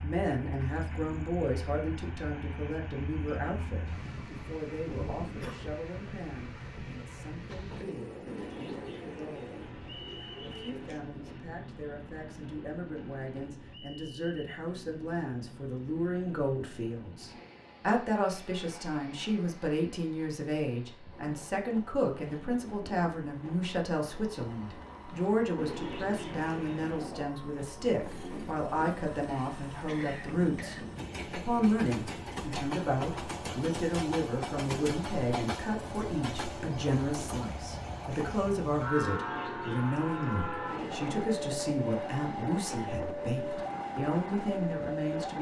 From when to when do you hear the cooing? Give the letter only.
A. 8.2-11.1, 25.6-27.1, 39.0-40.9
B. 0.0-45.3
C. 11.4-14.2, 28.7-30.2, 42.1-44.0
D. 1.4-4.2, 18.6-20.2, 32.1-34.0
A.